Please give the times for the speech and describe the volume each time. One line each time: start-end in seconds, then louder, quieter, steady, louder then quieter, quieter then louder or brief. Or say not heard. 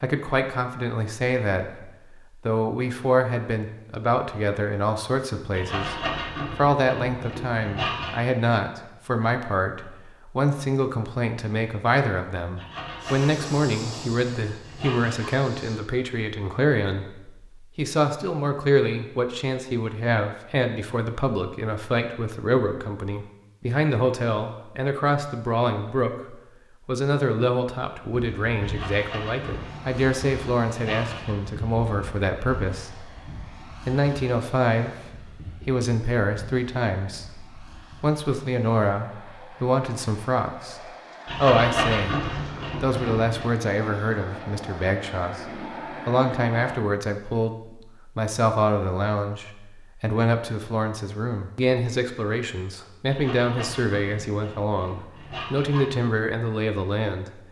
0.0-40.8 steady
41.4-57.4 steady.